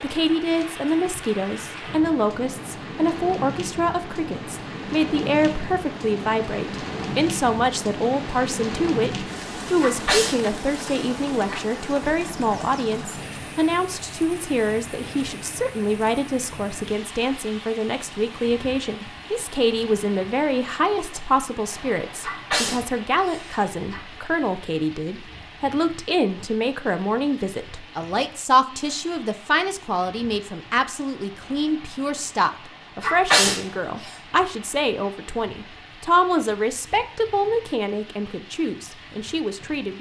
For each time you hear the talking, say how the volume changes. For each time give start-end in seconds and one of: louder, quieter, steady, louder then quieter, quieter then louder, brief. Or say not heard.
0.0-39.9 steady.